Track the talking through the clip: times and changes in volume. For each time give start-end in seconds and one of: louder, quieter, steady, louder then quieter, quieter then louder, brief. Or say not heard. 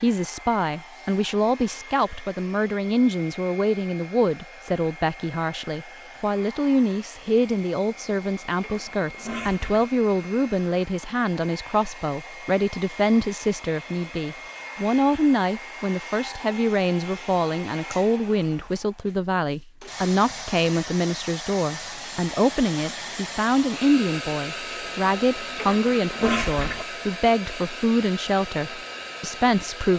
0.0-29.9 steady.